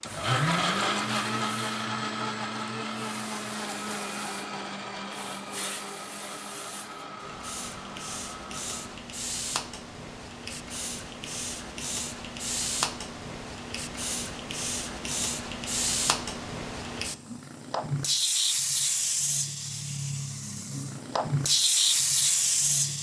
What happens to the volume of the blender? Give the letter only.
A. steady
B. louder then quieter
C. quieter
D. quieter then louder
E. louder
C.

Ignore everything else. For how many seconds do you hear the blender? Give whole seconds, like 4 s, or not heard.
9 s.